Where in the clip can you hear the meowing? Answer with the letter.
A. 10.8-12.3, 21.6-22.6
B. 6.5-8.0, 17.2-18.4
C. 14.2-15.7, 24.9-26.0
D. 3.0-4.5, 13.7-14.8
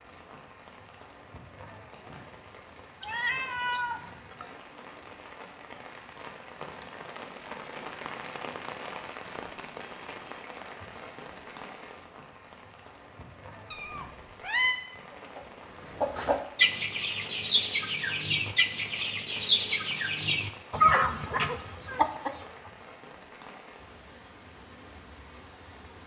D.